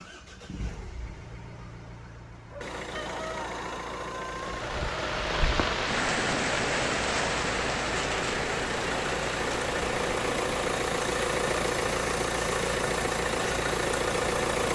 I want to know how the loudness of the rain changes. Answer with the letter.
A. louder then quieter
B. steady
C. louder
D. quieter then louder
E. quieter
E.